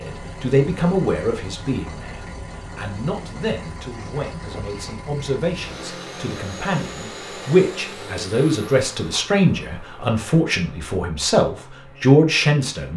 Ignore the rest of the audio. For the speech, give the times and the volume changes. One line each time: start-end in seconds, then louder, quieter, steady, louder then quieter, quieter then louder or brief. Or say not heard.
0.0-12.9 quieter then louder.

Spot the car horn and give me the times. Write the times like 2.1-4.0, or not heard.
not heard.